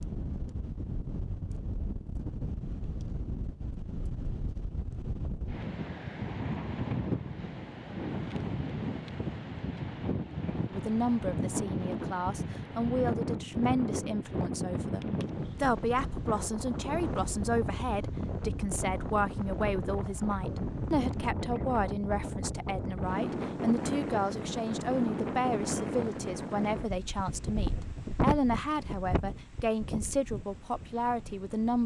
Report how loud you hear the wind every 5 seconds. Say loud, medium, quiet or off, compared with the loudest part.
medium, loud, loud, loud, loud, loud, quiet.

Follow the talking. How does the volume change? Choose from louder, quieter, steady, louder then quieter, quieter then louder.
steady.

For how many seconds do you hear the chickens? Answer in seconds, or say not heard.
not heard.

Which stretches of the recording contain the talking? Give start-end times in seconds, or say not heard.
10.7-31.8.